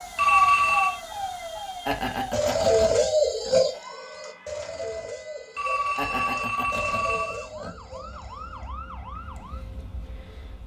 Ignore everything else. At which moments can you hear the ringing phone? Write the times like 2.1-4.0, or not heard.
0.1-0.9, 5.5-7.5.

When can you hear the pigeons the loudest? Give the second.
3 s.